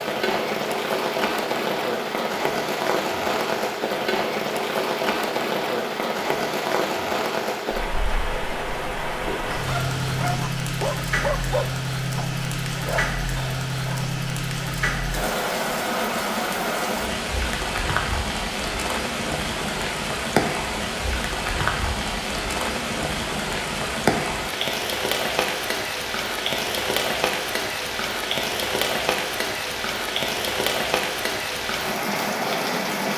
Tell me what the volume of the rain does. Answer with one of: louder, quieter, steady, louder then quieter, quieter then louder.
steady.